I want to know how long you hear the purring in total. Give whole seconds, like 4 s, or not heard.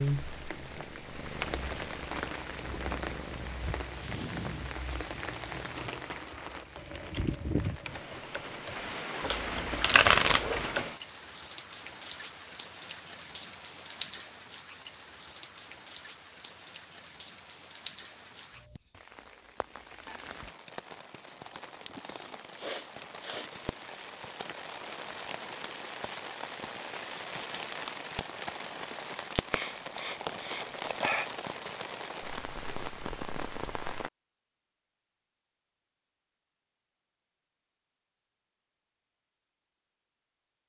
4 s.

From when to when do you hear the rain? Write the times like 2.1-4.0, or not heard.
0.0-34.1.